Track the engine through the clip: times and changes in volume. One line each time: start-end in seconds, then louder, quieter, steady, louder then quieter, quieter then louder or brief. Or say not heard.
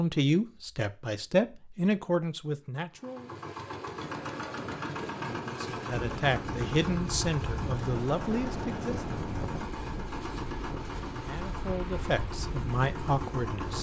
2.9-13.7 steady.